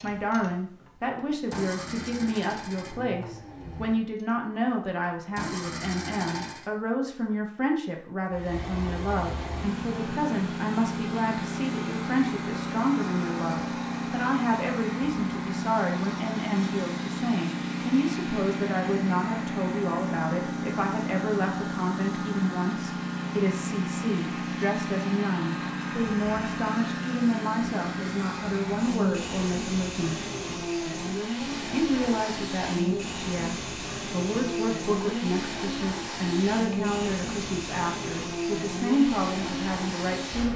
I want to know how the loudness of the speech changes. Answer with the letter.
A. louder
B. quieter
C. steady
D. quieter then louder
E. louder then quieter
C.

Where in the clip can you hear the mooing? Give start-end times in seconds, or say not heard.
not heard.